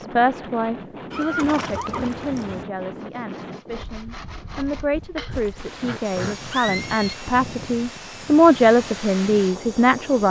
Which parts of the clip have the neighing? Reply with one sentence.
The neighing can be heard from 1.1 to 2.6 s and from 5.3 to 7.2 s.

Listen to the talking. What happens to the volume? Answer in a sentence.
The volume of the talking goes down, then up.